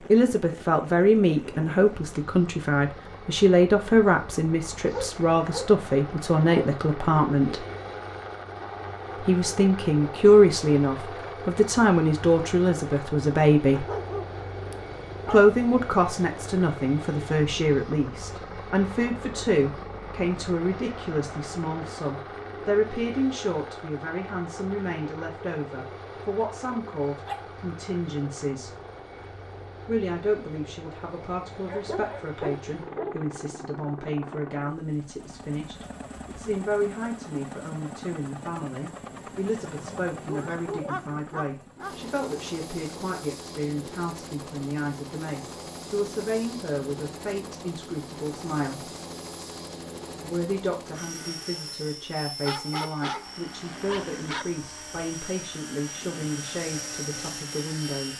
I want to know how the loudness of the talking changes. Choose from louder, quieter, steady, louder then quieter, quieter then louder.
quieter.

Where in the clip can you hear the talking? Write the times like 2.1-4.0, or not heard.
0.1-7.7, 9.2-13.8, 15.2-28.7, 29.9-49.0, 50.2-58.1.